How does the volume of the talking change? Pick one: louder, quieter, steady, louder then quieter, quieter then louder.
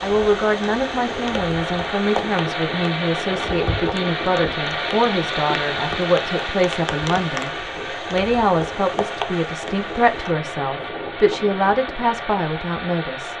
steady.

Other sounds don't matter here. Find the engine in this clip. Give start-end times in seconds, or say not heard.
0.0-13.3.